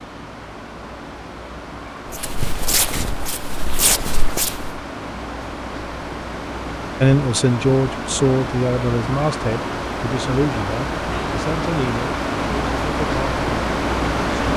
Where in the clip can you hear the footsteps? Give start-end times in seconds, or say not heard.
2.1-4.8.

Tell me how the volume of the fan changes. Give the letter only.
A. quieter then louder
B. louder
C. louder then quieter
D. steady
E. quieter
B.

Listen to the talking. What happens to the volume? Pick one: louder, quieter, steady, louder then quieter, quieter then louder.
quieter.